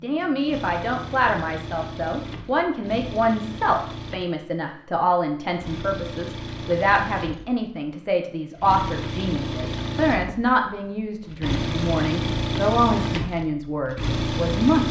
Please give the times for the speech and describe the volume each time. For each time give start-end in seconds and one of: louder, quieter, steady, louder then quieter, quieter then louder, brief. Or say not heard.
0.0-14.8 steady.